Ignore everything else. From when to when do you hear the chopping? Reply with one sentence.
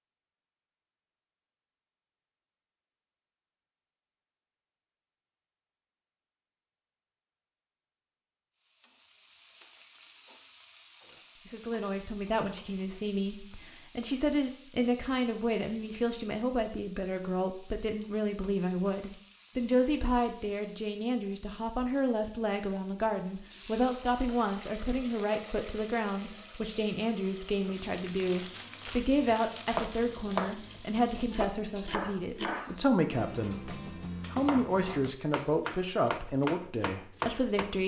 The chopping can be heard from 29.2 to 37.8 s.